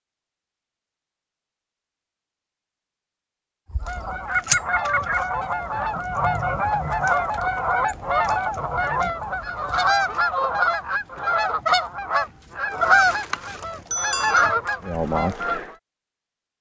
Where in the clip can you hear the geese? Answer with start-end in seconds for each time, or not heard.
3.7-15.8.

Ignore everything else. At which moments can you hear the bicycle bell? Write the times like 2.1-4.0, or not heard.
13.4-14.4.